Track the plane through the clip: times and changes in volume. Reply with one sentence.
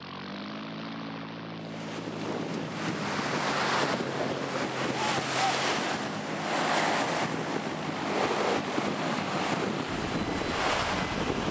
You can hear the plane from 0.0 to 11.4 s, at a steady volume.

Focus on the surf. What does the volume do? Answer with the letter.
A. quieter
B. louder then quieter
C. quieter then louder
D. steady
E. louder
D.